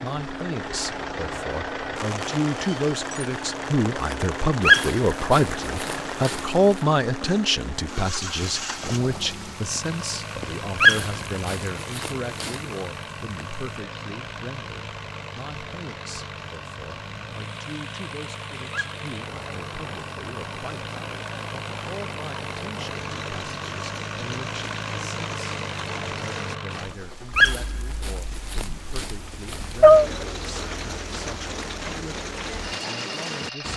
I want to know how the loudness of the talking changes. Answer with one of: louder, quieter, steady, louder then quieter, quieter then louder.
quieter.